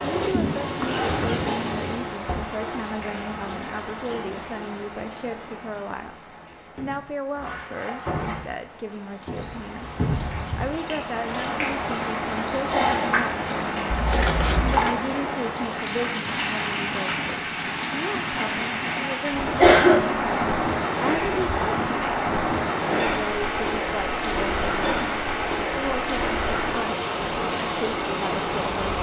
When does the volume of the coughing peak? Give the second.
20 s.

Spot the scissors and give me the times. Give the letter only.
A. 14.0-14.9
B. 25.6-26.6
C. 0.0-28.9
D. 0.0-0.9
A.